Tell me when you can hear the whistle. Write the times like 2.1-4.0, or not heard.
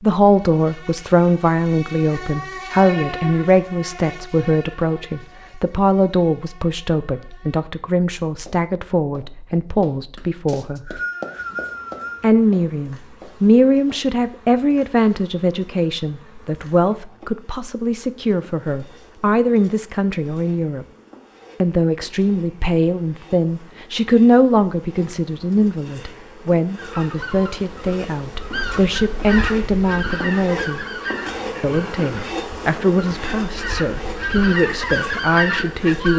10.4-12.2.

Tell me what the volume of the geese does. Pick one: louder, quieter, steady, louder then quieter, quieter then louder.
louder.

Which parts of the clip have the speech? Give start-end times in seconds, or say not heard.
0.0-11.0, 12.2-20.9, 21.6-30.8, 31.6-36.1.